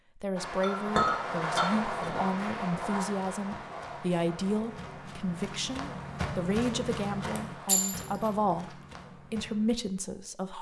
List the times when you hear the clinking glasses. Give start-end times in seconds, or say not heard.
0.6-2.1, 7.7-8.3.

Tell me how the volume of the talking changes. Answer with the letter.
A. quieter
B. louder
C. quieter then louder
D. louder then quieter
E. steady
E.